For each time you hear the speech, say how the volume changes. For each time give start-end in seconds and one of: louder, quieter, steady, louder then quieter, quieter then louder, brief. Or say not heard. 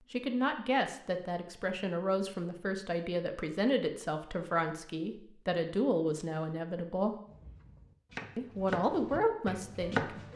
0.1-7.2 steady
8.3-10.1 brief.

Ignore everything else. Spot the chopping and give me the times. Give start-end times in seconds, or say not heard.
7.3-10.3.